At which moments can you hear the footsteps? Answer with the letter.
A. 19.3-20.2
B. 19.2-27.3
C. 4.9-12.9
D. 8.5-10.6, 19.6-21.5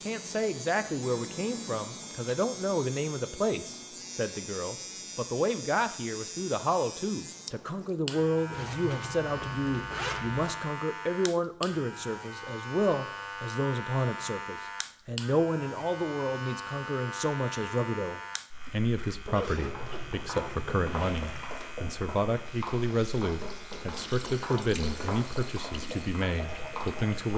B.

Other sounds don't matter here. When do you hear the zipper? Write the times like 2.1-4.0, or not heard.
8.5-10.6, 19.6-21.5.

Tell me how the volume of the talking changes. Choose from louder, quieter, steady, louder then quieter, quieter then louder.
steady.